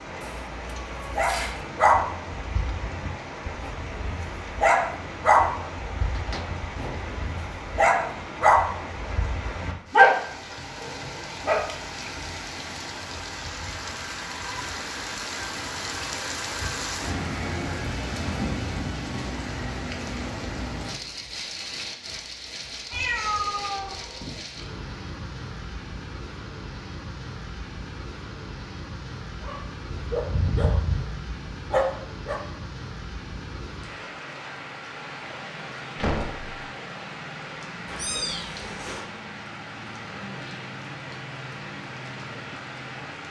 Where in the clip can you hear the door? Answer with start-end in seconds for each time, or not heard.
6.0-7.1, 36.0-36.5.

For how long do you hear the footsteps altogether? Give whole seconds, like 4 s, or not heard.
not heard.